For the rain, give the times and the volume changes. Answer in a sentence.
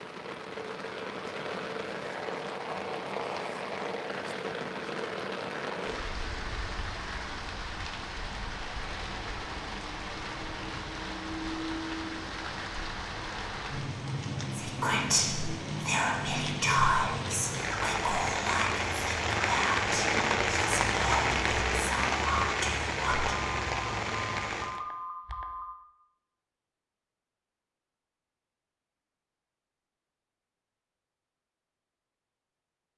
The rain can be heard from 0.0 to 24.8 s, getting louder.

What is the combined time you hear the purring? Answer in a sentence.
The purring can't be heard in this clip.